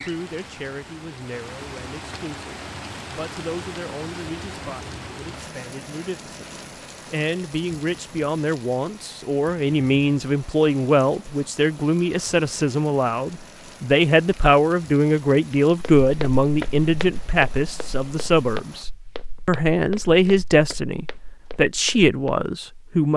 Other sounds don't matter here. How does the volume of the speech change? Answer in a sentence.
The volume of the speech goes up.